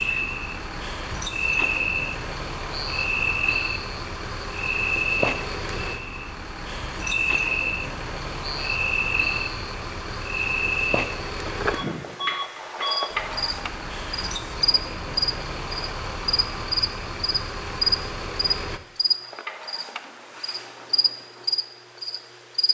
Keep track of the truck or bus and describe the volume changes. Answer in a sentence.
The loudness of the truck or bus stays about the same.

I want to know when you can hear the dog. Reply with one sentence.
The dog can't be heard in this clip.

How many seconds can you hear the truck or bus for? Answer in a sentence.
You can hear the truck or bus for 19 seconds altogether.